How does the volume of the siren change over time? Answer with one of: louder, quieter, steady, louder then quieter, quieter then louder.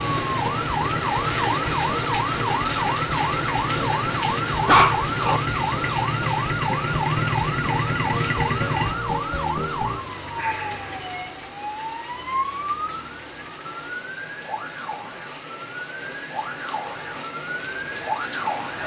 quieter.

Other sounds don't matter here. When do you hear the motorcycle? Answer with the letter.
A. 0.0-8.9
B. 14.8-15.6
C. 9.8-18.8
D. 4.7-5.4
A.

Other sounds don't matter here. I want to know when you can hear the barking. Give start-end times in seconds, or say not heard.
4.7-5.4.